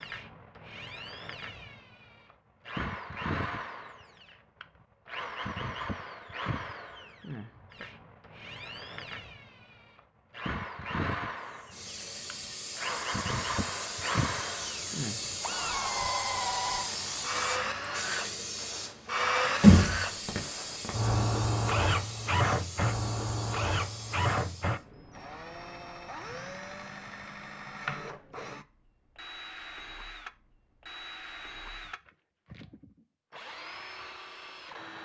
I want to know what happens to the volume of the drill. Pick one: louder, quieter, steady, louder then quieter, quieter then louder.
louder then quieter.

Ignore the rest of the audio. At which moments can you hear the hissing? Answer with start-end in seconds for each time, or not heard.
11.4-24.9.